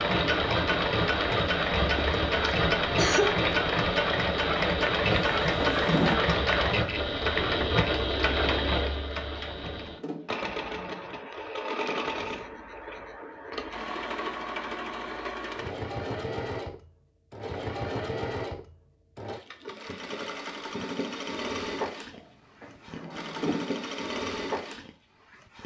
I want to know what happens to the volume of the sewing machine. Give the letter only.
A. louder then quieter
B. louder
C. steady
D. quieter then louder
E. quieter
E.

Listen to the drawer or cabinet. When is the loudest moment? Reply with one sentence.
The volume of the drawer or cabinet peaks at 6 seconds.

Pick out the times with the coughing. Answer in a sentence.
You can hear the coughing from 1.9 to 3.4 s.